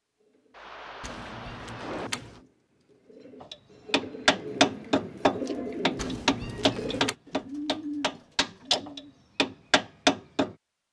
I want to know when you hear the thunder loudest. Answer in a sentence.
The volume of the thunder peaks at 2 seconds.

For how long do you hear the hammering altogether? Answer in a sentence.
You can hear the hammering for 7 seconds altogether.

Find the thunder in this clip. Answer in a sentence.
You can hear the thunder from 0.5 to 2.1 s.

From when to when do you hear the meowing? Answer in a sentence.
You can hear the meowing from 1.0 to 2.4 s and from 6.0 to 7.2 s.